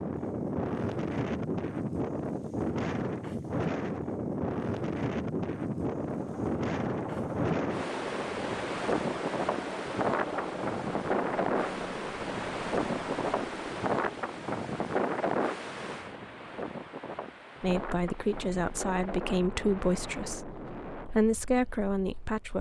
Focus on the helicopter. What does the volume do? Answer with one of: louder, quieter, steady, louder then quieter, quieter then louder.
steady.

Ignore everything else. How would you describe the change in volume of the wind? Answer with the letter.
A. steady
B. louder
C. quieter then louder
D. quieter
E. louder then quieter
D.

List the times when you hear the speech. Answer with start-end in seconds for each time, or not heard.
17.6-22.5.